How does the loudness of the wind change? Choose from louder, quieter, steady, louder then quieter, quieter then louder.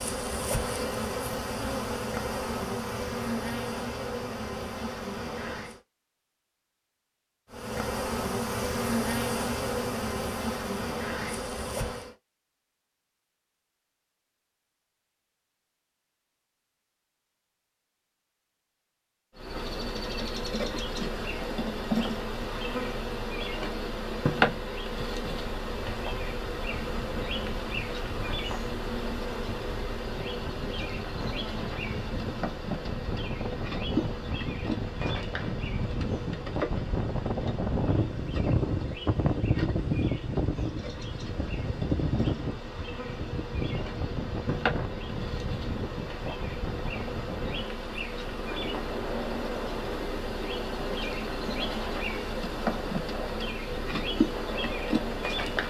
louder then quieter.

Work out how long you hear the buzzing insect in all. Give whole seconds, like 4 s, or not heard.
47 s.